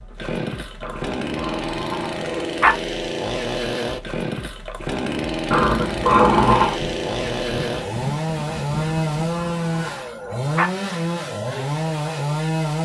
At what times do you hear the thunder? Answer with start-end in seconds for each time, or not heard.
6.8-9.4.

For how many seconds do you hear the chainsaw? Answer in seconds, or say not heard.
13 s.